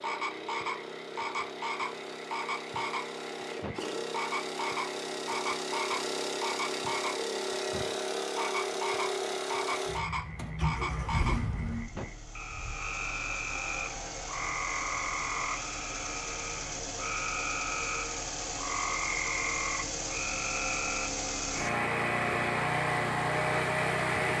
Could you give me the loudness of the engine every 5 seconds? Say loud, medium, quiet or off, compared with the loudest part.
medium, loud, medium, medium, loud.